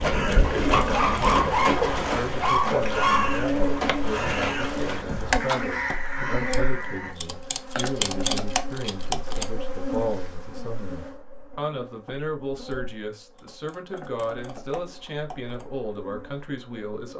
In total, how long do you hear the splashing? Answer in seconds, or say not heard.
6 s.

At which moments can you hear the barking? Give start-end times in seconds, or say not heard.
0.8-3.5.